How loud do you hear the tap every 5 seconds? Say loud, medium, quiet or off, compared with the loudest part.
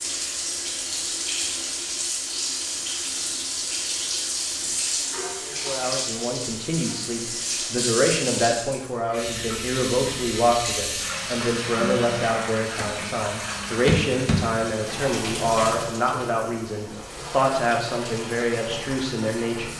loud, loud, loud, medium.